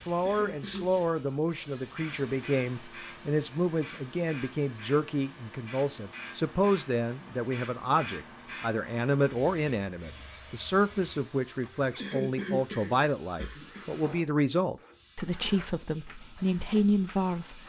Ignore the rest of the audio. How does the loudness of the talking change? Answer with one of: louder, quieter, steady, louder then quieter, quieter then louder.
steady.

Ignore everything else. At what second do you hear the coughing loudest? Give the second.
12 s.